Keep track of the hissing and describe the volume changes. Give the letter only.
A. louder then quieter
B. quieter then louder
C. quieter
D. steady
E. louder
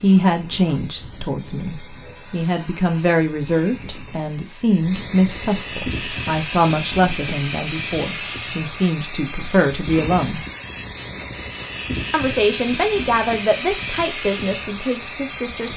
E.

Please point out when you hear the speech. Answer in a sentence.
The speech can be heard from 0.0 to 10.4 s and from 12.1 to 15.7 s.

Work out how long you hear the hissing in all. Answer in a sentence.
The hissing can be heard for 16 seconds in total.